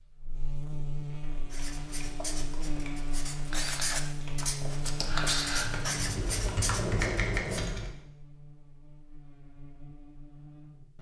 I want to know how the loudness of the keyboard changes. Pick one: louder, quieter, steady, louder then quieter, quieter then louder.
louder.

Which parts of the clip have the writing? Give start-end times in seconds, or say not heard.
1.5-7.7.